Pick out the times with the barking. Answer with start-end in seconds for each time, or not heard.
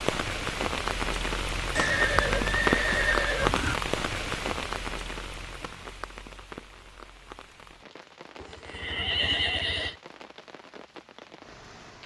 not heard.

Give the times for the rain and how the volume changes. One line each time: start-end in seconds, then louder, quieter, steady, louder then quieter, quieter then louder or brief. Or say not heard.
0.0-12.0 quieter.